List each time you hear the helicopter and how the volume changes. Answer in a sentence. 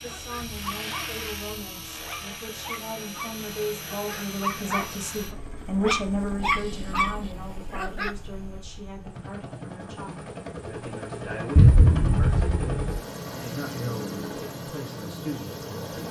The helicopter can be heard from 0.0 to 16.0 s, getting quieter then louder.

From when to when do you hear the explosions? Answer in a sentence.
You can hear the explosions from 11.6 to 12.8 s.